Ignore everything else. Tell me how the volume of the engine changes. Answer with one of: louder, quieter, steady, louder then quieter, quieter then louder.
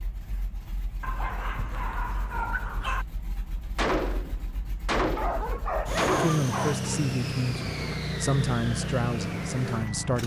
louder.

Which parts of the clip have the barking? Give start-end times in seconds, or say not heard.
1.0-3.0, 5.2-7.0.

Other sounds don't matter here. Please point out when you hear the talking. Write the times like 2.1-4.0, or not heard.
6.2-10.2.